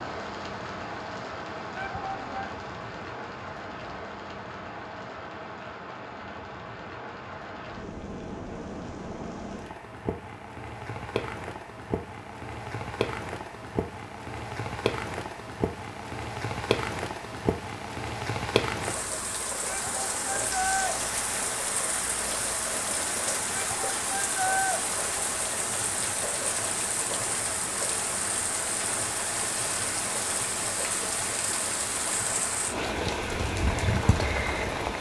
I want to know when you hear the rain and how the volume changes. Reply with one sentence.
You can hear the rain from 0.0 to 34.9 s, getting louder.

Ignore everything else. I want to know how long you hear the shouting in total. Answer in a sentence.
You can hear the shouting for 3 seconds altogether.